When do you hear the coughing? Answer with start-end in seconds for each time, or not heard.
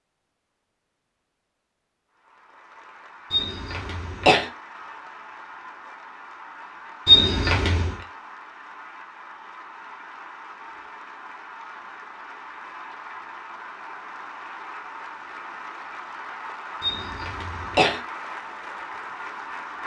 3.3-4.5, 7.0-8.0, 16.8-18.0.